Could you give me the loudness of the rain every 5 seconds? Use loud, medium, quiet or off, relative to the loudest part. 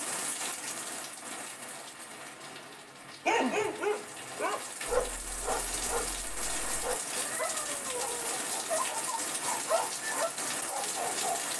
medium, loud, loud.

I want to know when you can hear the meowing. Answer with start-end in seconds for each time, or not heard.
2.5-3.8, 7.1-8.3.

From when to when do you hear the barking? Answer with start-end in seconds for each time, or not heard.
3.2-11.4.